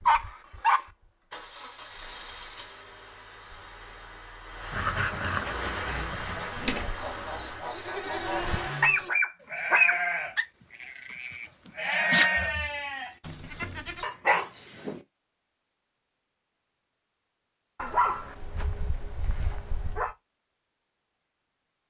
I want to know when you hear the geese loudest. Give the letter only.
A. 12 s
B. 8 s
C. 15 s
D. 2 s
B.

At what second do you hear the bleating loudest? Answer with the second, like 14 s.
12 s.